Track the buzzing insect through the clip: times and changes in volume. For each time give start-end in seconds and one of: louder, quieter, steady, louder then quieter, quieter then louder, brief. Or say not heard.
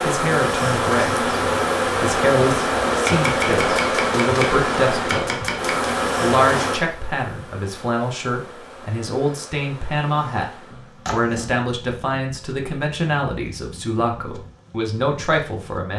0.0-15.9 quieter.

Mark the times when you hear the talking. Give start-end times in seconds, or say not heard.
0.0-1.4, 2.0-5.3, 6.2-15.9.